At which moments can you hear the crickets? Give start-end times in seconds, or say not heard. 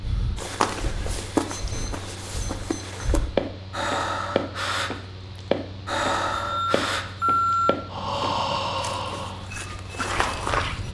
not heard.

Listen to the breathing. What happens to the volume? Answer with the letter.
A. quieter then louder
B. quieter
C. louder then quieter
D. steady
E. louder
E.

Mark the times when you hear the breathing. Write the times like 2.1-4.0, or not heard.
0.0-9.8.